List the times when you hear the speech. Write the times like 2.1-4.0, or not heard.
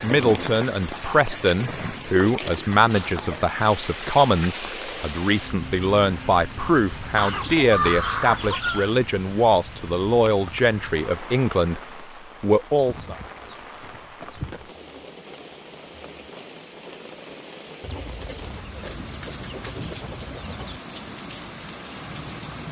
0.0-11.8, 12.4-13.2.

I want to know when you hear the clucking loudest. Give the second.
8 s.